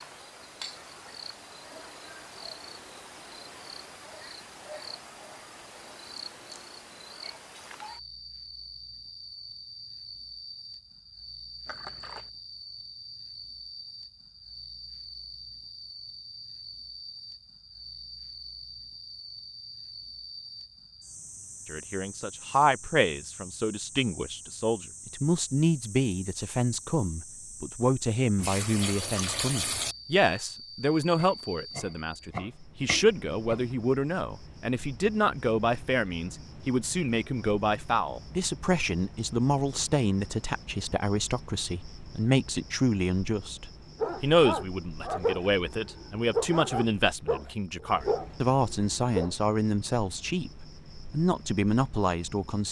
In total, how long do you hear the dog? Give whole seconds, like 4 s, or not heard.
5 s.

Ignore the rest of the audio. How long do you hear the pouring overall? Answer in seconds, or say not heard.
2 s.